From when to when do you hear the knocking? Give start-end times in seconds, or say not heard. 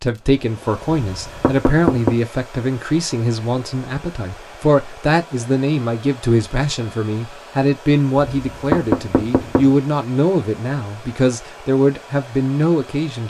1.0-2.1, 8.3-9.8.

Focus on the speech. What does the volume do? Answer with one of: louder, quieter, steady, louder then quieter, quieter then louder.
steady.